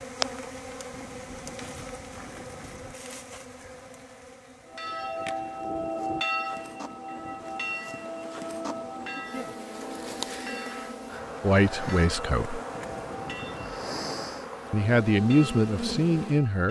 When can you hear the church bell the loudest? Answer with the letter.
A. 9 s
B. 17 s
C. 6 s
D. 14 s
C.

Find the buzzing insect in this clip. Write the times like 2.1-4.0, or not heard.
0.0-16.6.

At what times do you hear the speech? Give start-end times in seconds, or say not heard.
11.4-12.6, 14.7-16.6.